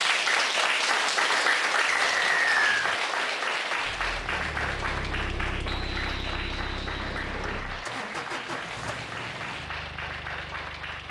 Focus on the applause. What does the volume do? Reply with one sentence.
The loudness of the applause goes down.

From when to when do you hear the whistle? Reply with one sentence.
You can hear the whistle from 1.9 to 2.9 s and from 5.7 to 7.7 s.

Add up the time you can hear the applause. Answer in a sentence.
You can hear the applause for 11 seconds altogether.